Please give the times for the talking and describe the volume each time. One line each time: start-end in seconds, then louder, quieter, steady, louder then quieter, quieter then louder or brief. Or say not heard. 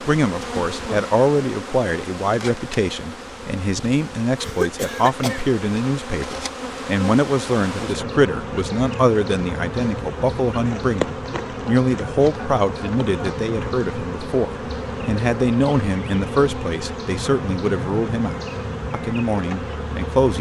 0.0-20.3 steady.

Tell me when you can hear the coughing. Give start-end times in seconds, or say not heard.
4.3-5.5.